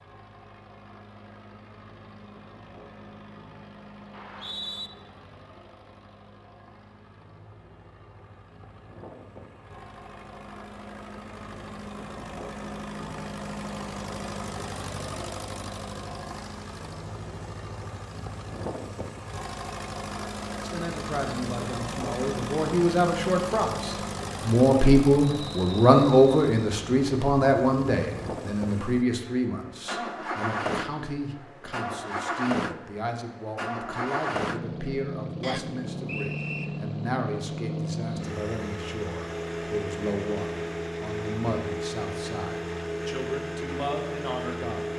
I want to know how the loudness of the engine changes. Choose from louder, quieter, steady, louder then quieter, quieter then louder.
louder.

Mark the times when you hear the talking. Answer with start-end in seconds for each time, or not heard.
20.6-44.9.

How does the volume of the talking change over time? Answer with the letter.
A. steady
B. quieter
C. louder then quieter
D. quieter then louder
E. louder
B.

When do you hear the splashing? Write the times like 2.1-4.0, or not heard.
not heard.